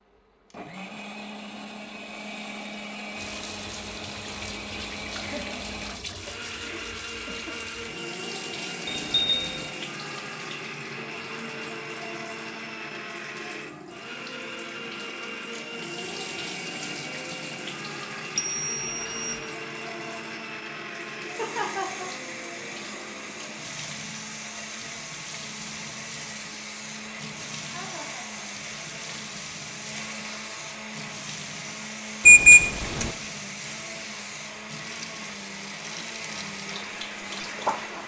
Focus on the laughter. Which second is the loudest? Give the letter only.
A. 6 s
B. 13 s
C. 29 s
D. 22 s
D.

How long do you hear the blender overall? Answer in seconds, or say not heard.
38 s.